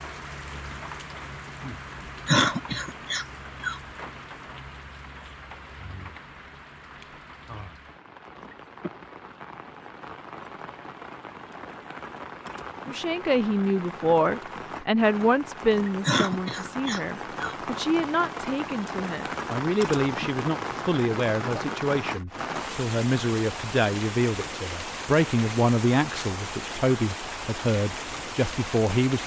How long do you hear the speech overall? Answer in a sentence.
You can hear the speech for 16 seconds altogether.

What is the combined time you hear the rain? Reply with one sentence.
The rain can be heard for 29 seconds in total.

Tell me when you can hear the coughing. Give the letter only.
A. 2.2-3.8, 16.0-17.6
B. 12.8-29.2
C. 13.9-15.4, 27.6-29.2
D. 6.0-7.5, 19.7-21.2
A.